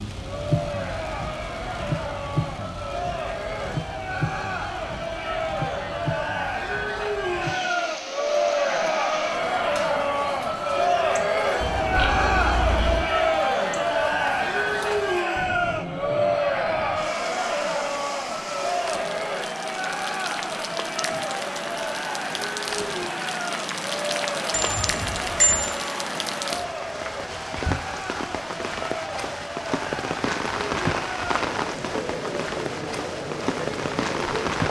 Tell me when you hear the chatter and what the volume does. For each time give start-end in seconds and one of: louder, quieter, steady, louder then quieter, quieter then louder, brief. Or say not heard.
0.1-34.6 louder then quieter.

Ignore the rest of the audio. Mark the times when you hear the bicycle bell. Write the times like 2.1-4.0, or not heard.
11.6-13.1, 24.5-25.6.